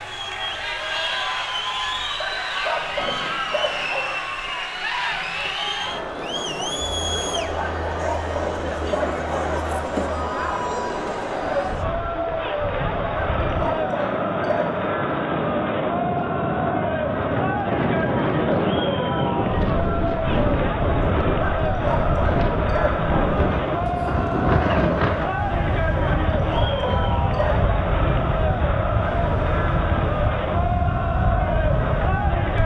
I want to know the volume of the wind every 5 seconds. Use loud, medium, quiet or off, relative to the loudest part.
off, off, medium, loud, loud, loud, loud.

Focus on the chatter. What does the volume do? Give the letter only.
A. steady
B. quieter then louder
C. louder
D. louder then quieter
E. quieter
A.